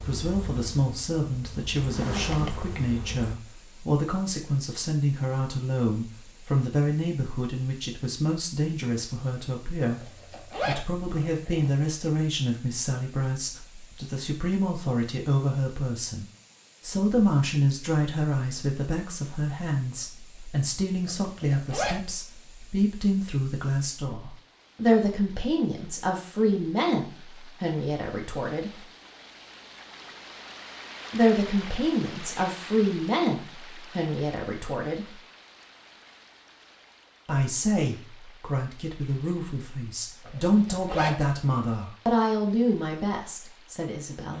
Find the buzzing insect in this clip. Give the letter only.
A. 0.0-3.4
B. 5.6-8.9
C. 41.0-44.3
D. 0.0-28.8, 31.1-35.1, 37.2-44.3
A.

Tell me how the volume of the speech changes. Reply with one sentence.
The loudness of the speech stays about the same.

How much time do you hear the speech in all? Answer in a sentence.
You can hear the speech for 40 seconds altogether.